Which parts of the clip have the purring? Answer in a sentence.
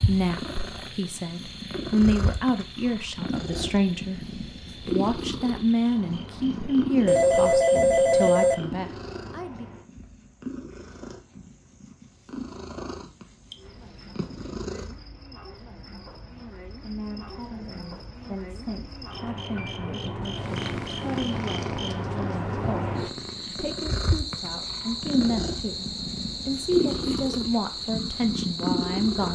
The purring can be heard from 0.0 to 15.0 s and from 20.4 to 29.2 s.